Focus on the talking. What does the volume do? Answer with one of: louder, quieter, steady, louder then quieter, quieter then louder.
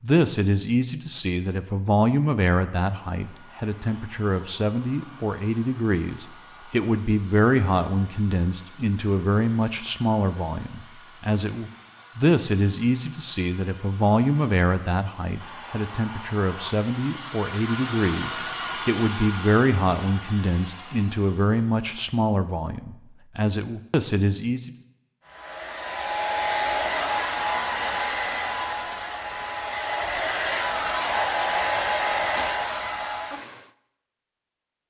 steady.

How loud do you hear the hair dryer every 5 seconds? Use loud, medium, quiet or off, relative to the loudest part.
quiet, quiet, quiet, medium, quiet, loud, loud.